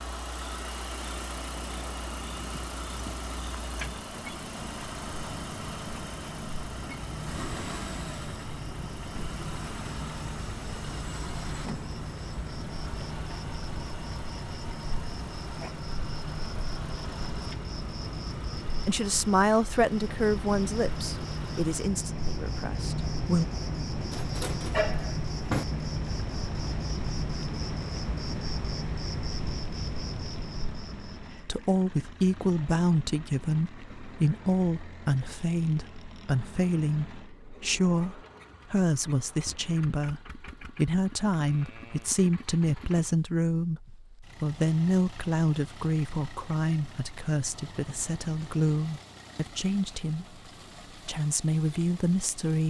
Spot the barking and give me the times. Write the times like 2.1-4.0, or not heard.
24.1-25.6.